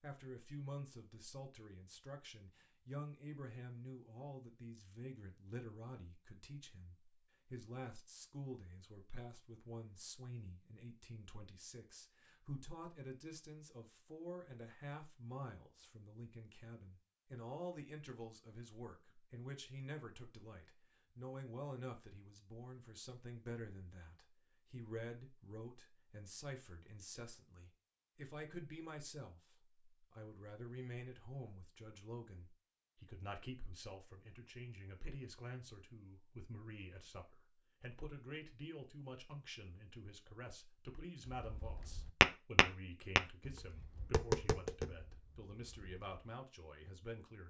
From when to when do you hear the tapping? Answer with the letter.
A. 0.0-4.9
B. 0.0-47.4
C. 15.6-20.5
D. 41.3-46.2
D.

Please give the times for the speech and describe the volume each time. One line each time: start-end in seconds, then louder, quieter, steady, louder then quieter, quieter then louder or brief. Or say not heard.
0.0-47.4 steady.